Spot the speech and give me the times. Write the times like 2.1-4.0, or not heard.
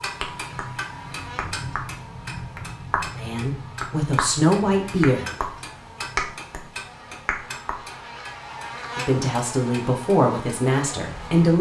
3.1-5.3, 8.9-11.5.